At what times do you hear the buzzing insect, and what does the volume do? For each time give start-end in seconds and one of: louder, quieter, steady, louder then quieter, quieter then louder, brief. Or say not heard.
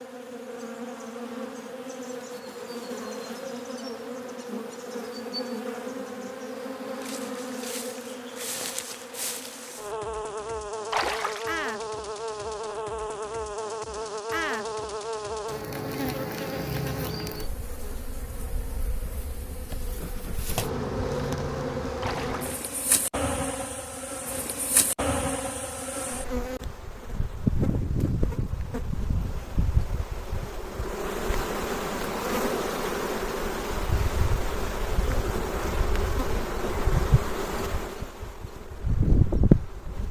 0.0-40.0 louder.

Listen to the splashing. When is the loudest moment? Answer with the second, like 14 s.
11 s.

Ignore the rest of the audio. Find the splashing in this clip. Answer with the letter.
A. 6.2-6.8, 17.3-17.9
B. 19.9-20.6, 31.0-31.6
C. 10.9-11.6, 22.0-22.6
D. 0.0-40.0
C.